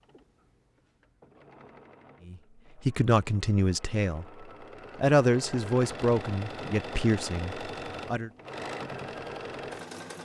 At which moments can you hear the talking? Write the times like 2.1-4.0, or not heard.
2.2-8.3.